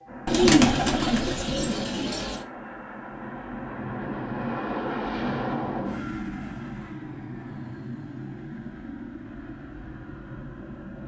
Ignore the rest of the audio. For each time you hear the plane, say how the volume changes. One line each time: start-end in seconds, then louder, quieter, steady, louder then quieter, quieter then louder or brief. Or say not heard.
0.0-11.0 louder then quieter.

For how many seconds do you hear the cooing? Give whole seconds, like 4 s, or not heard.
2 s.